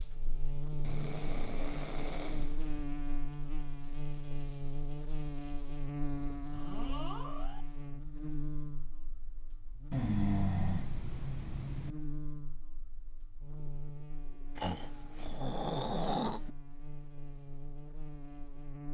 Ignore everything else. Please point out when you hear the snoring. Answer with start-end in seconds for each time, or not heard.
0.8-2.9, 6.5-7.7, 9.9-11.9, 14.6-16.5.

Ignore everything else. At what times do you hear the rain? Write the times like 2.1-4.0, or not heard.
not heard.